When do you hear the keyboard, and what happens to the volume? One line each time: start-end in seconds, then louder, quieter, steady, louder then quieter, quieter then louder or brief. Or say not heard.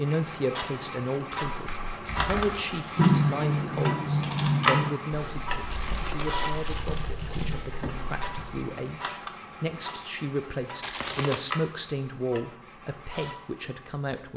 1.2-8.7 louder then quieter.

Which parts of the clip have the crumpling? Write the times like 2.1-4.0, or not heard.
2.0-2.7, 5.7-7.5, 10.8-11.4.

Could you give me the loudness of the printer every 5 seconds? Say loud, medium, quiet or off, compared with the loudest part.
loud, medium, medium.